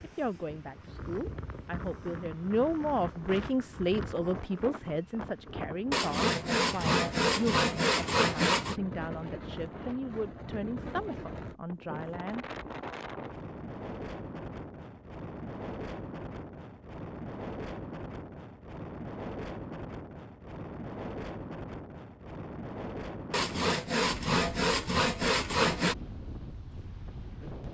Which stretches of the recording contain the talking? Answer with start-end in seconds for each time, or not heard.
0.0-12.4.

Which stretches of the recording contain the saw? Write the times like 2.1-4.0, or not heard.
5.9-8.8, 23.3-25.9.